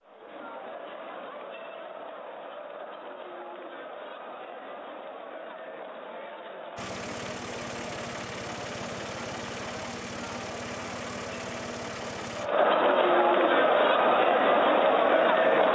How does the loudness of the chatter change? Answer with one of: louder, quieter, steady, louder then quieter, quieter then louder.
louder.